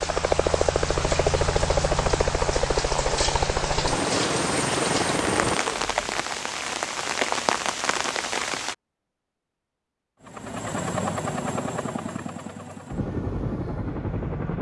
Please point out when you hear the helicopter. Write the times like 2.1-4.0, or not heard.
0.0-6.2, 10.2-14.5.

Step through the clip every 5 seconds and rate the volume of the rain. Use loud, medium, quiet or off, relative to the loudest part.
loud, loud, off.